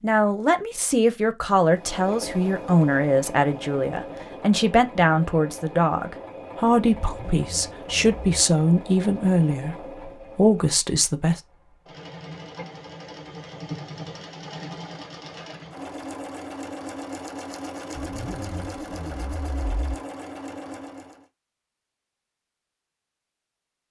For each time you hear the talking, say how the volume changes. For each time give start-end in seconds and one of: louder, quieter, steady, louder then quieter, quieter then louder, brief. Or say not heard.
0.0-11.4 steady.